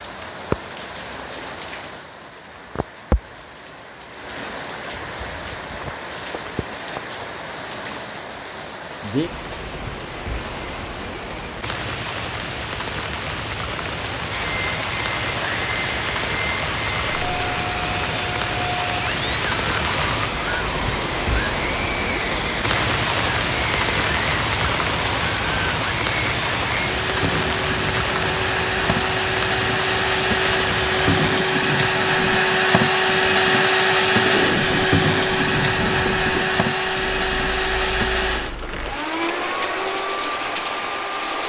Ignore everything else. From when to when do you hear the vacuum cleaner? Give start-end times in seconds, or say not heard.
14.3-41.4.